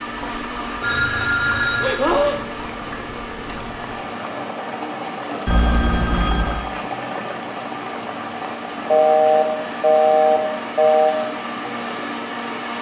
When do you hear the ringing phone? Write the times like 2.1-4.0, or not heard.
0.8-2.4, 5.5-6.7, 8.9-11.2.